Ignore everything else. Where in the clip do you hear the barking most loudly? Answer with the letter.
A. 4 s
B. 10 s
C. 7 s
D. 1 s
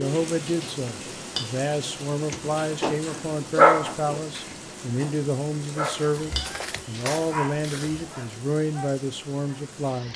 A.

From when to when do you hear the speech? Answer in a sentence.
The speech can be heard from 0.0 to 10.1 s.